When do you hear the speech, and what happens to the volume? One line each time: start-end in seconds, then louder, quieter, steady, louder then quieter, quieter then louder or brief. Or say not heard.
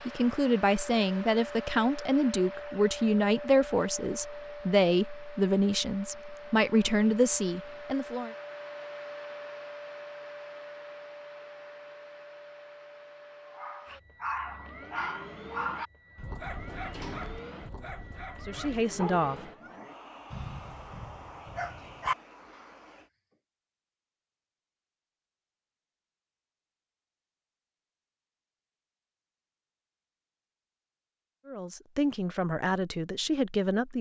0.1-8.3 steady
17.8-19.4 brief
31.4-33.9 brief.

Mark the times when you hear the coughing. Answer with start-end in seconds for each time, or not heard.
not heard.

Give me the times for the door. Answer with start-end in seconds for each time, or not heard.
16.6-17.4.